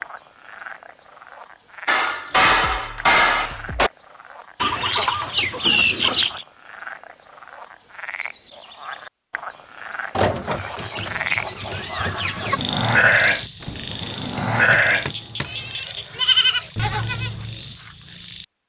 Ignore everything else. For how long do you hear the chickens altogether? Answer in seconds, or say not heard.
4 s.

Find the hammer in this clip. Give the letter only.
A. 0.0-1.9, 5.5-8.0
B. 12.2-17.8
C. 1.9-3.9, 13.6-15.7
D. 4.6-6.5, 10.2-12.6
C.